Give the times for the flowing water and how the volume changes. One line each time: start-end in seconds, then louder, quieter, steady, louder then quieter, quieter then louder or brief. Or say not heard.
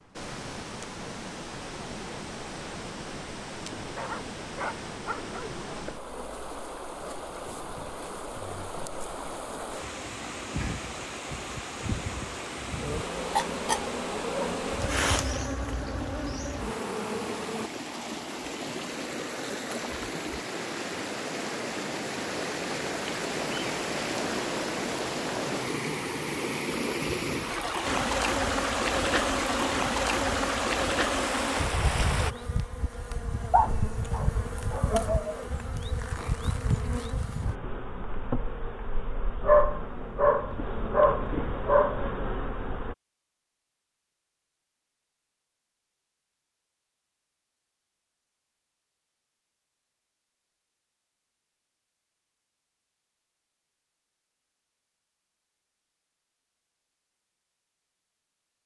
0.0-32.4 louder.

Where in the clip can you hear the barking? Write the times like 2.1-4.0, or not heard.
4.0-5.6, 33.5-35.5, 39.4-42.0.